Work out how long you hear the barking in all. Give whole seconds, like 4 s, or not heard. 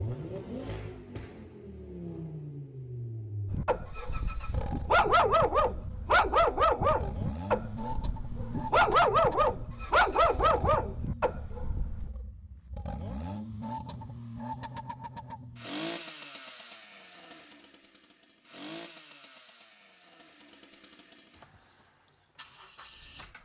9 s.